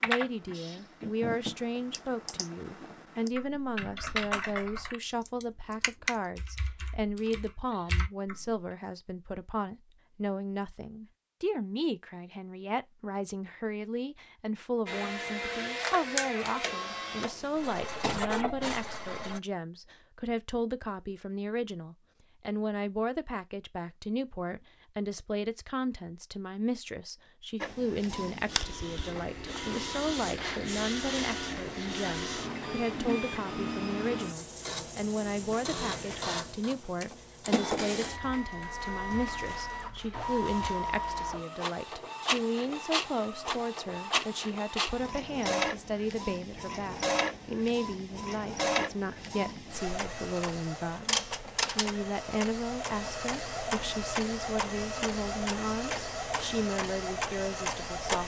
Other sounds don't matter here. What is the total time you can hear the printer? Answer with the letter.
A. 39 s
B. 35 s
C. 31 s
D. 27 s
B.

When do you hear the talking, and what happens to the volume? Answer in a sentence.
The talking can be heard from 0.0 to 58.2 s, at a steady volume.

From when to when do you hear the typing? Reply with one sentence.
You can hear the typing from 0.0 to 8.6 s.